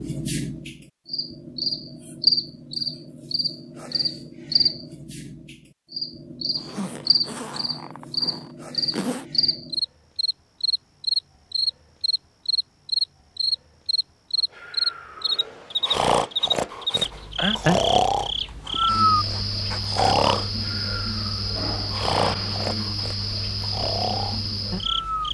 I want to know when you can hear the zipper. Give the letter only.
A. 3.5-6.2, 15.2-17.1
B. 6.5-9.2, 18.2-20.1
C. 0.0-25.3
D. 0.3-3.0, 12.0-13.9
B.